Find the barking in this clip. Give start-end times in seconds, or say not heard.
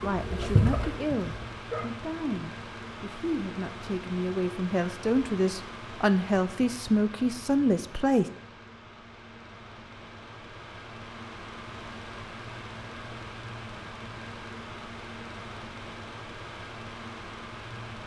0.0-1.9.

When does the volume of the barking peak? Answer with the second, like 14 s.
1 s.